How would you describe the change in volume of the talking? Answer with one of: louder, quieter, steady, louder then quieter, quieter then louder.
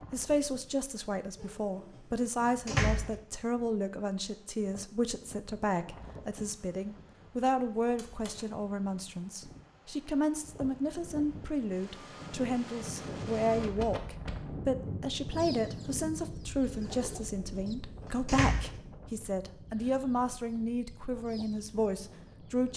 steady.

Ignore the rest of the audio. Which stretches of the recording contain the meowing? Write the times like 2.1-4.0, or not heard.
not heard.